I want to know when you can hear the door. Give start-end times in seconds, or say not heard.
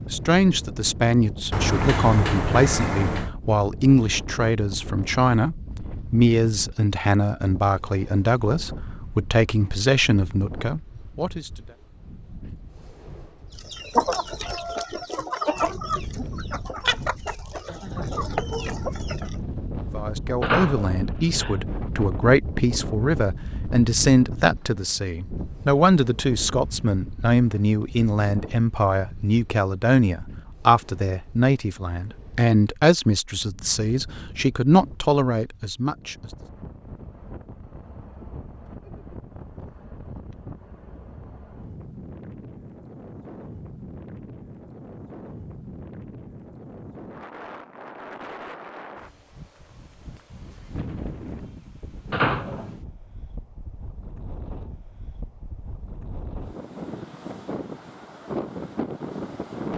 1.5-3.3, 20.4-21.6, 52.1-52.8.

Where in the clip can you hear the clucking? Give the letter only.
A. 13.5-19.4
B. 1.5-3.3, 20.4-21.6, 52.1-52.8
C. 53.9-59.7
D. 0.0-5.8
A.